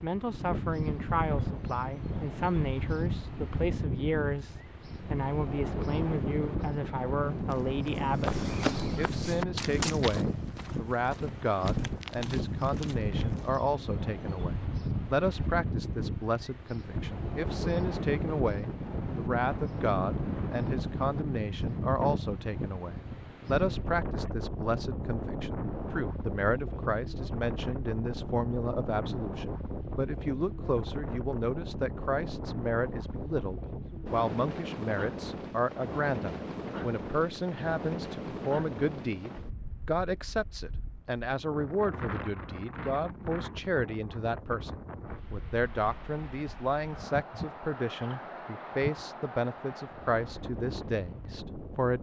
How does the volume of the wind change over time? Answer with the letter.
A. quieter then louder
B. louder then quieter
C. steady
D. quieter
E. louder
D.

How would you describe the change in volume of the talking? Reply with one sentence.
The volume of the talking stays about the same.